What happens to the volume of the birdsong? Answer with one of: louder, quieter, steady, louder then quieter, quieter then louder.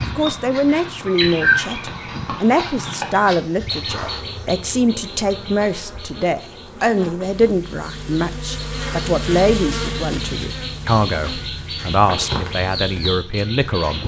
quieter then louder.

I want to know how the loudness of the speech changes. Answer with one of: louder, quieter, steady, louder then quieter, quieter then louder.
steady.